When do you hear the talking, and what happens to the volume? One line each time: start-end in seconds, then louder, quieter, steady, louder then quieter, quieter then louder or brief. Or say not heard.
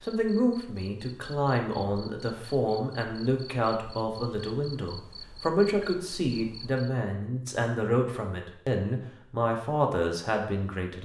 0.0-10.9 steady.